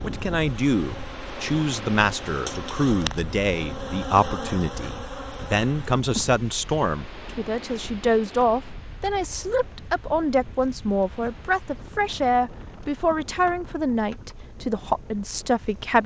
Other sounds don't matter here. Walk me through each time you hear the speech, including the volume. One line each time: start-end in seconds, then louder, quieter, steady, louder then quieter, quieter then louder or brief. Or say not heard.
0.0-16.0 steady.